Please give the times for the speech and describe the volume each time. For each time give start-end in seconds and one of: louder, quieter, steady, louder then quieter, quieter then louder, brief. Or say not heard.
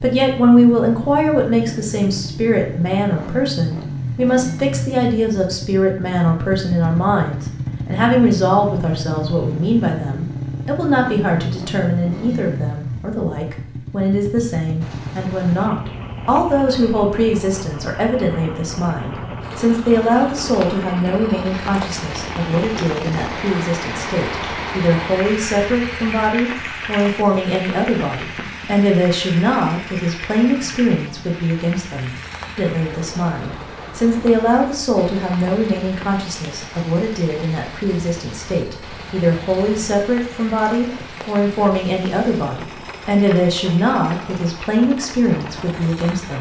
0.0-46.3 steady.